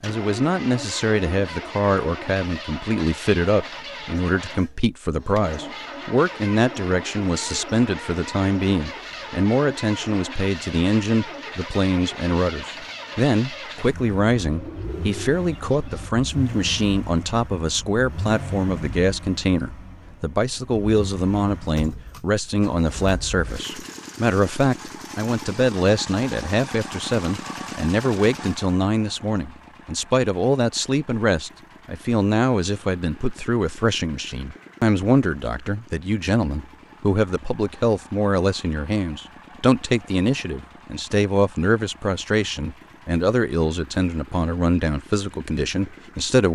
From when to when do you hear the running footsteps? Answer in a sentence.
You can't hear the running footsteps here.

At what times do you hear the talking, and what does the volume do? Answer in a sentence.
You can hear the talking from 0.0 to 46.4 s, at a steady volume.